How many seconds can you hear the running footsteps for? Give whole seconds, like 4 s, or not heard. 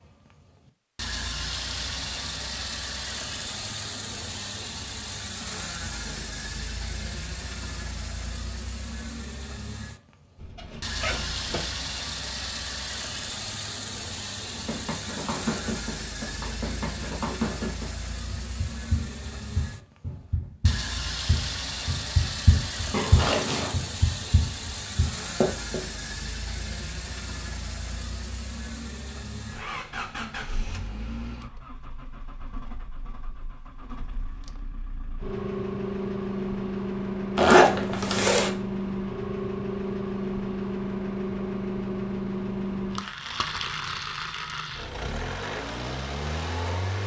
11 s.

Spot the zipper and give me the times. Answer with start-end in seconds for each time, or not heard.
10.3-11.6, 22.9-23.8, 37.4-38.5.